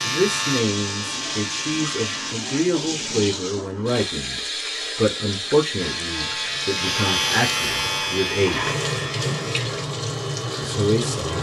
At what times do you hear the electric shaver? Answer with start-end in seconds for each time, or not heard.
0.0-2.4, 5.8-11.3.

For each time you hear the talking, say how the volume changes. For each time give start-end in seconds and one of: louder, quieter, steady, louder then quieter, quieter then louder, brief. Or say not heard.
0.0-8.8 steady
10.6-11.3 brief.